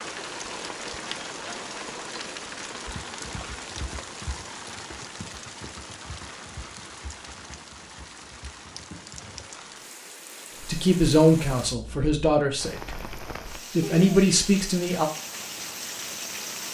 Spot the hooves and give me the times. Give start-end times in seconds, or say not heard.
2.9-9.4.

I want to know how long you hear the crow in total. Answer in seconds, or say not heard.
not heard.